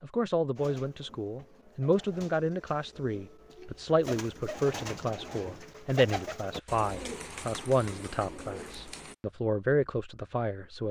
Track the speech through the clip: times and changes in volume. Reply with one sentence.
The speech can be heard from 0.0 to 10.8 s, at a steady volume.